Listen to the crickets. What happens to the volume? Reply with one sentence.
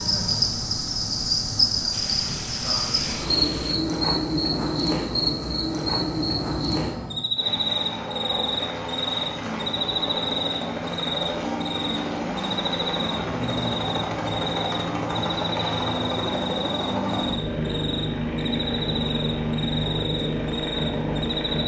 The loudness of the crickets goes down.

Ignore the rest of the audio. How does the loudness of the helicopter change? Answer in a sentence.
The volume of the helicopter goes up.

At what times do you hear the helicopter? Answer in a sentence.
The helicopter can be heard from 0.0 to 21.6 s.